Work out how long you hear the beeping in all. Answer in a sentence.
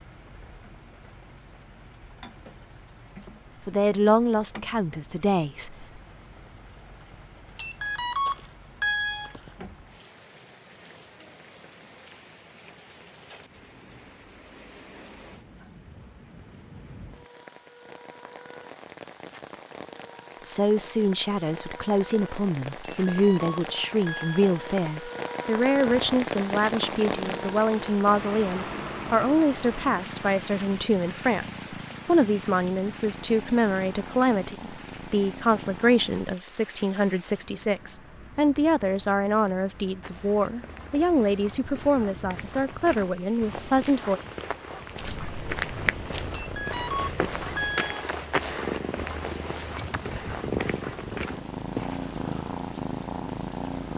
The beeping can be heard for 6 seconds in total.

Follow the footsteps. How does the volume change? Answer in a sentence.
The loudness of the footsteps goes up.